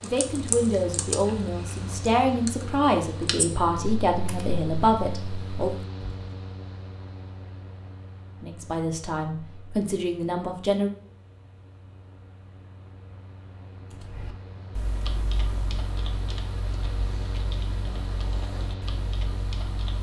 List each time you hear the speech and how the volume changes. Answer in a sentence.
You can hear the speech from 0.0 to 5.7 s, at a steady volume; and briefly from 8.4 to 10.9 s.